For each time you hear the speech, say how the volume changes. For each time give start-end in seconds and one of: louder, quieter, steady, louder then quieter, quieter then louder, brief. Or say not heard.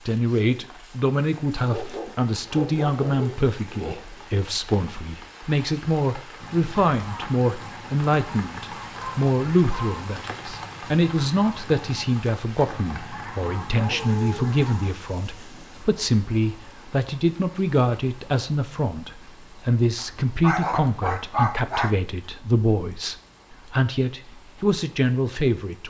0.1-25.8 steady.